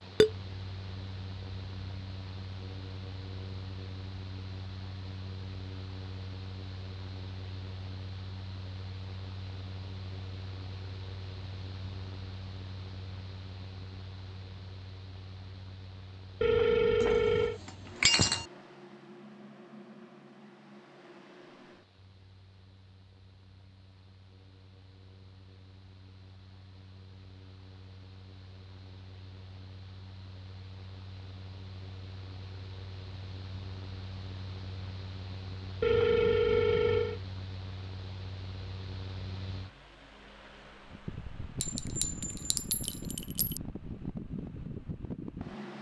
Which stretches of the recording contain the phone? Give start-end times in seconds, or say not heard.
16.4-17.6, 35.8-37.2.